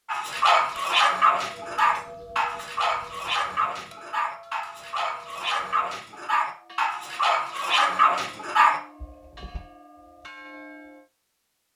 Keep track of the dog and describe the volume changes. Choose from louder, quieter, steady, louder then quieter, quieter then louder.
quieter then louder.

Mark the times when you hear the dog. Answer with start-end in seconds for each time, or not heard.
0.1-9.6.